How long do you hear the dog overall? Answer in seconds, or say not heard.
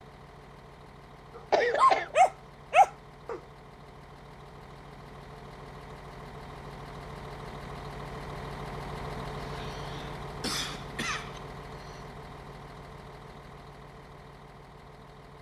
2 s.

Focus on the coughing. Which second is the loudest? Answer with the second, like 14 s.
2 s.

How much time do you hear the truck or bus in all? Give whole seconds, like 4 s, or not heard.
15 s.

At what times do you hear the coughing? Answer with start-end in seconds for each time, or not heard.
1.5-2.1, 9.3-12.0.